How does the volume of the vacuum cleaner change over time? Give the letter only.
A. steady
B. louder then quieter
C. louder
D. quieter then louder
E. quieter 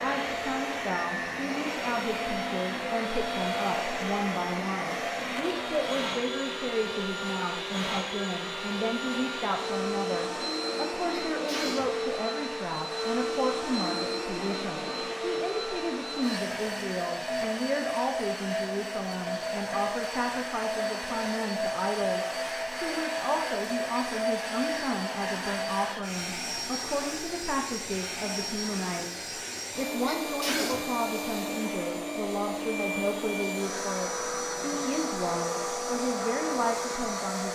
A.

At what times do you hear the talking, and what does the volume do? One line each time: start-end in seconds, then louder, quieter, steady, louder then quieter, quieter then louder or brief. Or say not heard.
0.0-37.5 steady.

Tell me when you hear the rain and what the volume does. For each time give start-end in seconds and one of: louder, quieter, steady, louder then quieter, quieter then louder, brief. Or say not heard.
not heard.